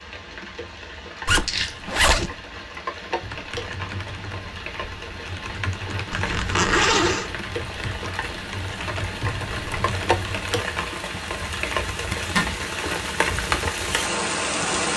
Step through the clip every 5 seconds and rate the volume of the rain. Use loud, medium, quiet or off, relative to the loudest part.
medium, medium, loud.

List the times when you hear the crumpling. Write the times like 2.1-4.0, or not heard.
1.4-1.9.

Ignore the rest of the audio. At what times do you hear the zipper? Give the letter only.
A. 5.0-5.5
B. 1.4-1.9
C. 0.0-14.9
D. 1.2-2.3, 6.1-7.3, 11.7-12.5
D.